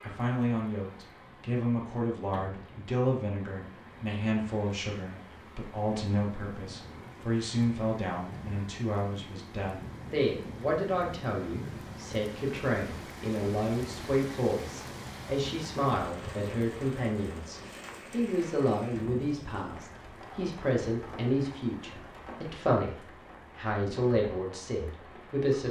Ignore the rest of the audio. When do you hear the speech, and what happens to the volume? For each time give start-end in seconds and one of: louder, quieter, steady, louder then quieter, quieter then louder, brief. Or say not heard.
0.0-25.6 steady.